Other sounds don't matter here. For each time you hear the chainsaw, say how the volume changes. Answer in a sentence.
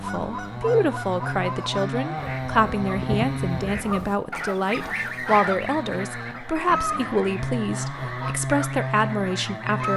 You can hear the chainsaw from 0.0 to 9.9 s, getting quieter then louder.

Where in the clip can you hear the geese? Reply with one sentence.
The geese can be heard from 0.0 to 9.9 s.